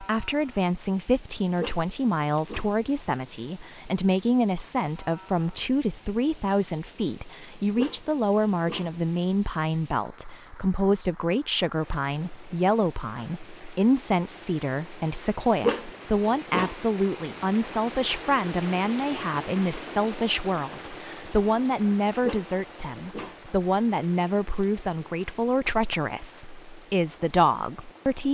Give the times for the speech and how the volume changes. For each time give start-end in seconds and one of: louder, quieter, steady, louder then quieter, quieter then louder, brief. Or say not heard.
0.0-28.2 steady.